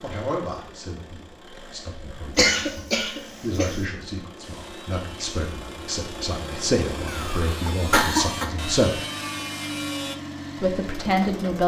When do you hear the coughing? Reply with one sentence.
You can hear the coughing from 2.4 to 3.8 s and from 7.0 to 8.5 s.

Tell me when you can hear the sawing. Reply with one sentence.
The sawing can be heard from 4.4 to 10.2 s.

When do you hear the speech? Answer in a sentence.
The speech can be heard from 0.0 to 9.0 s and from 10.6 to 11.6 s.